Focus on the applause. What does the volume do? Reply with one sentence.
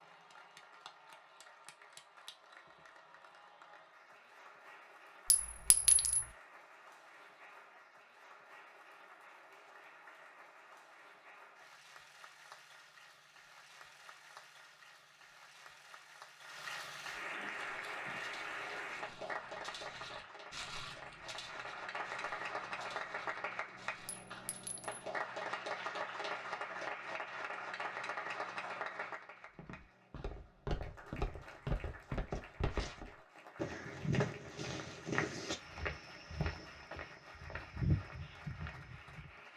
The loudness of the applause goes up, then down.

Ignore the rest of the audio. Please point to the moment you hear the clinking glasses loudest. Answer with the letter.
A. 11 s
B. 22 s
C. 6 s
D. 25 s
C.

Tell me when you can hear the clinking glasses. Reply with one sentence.
The clinking glasses can be heard from 5.3 to 6.2 s and from 24.2 to 25.0 s.